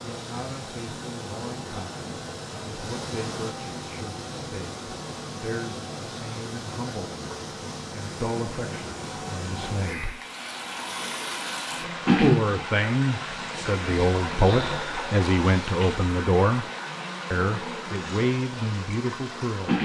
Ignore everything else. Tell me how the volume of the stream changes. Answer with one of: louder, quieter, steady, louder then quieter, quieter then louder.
louder then quieter.